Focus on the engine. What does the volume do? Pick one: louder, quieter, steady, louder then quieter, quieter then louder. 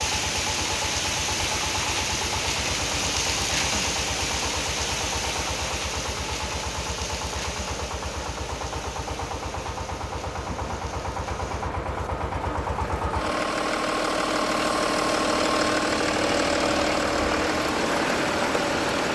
louder.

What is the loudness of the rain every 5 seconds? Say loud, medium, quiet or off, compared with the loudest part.
loud, medium, quiet, loud.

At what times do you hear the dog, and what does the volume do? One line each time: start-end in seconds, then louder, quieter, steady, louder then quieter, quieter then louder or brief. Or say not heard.
not heard.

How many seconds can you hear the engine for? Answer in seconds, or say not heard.
19 s.